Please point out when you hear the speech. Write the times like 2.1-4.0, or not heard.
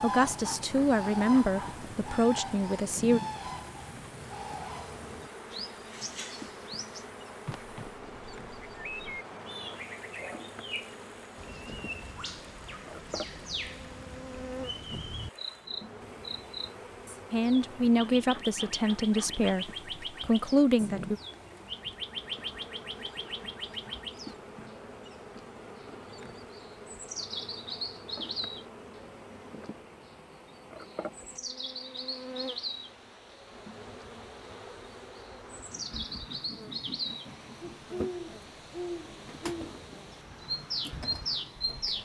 0.0-3.2, 17.3-21.2.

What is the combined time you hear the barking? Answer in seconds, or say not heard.
not heard.